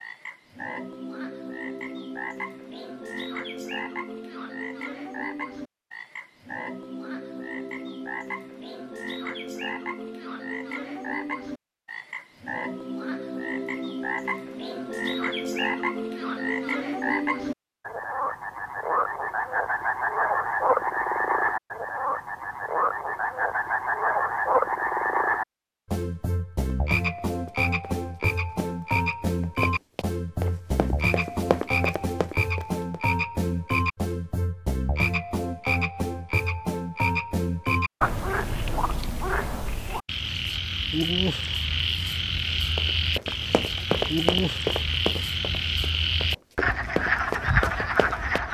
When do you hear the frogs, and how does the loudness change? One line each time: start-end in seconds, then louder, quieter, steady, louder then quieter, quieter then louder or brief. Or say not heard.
0.0-48.4 louder.